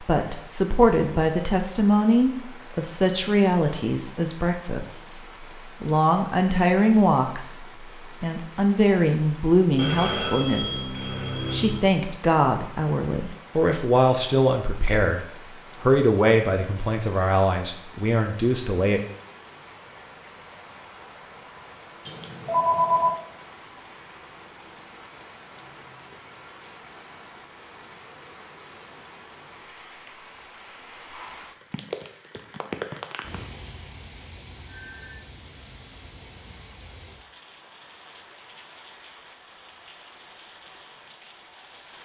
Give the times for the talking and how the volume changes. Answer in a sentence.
The talking can be heard from 0.0 to 19.0 s, at a steady volume.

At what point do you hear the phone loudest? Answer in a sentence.
The loudest moment of the phone is at 23 seconds.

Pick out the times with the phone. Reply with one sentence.
The phone can be heard from 9.8 to 11.8 s, from 22.1 to 23.1 s and from 34.6 to 35.2 s.